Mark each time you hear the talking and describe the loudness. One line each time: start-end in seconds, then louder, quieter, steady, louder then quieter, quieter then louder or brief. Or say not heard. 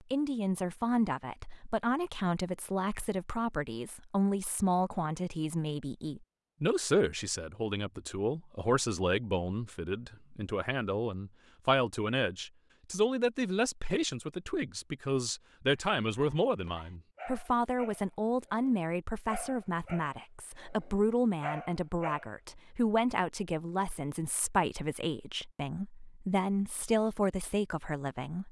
0.1-28.4 steady.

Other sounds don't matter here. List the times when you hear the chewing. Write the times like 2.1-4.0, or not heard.
not heard.